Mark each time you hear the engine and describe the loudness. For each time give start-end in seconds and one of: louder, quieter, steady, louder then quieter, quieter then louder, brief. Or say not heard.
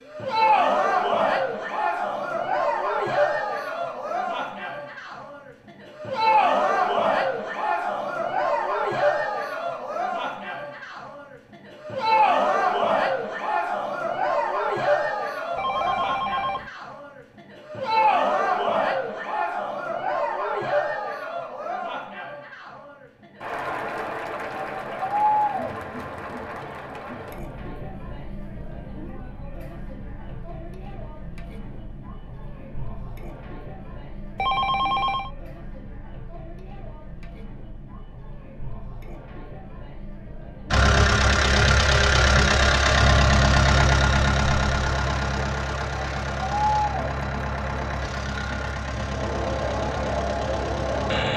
40.7-51.3 quieter.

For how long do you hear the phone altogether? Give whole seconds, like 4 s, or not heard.
2 s.